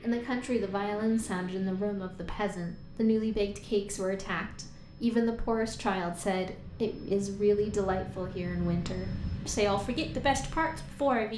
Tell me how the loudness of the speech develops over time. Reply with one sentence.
The loudness of the speech stays about the same.